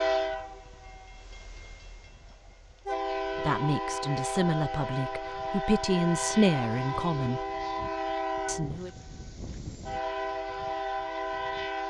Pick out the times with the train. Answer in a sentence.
You can hear the train from 0.0 to 11.8 s.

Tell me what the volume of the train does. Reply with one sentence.
The volume of the train goes up.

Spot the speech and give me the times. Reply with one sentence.
You can hear the speech from 3.4 to 7.4 s and from 8.4 to 8.9 s.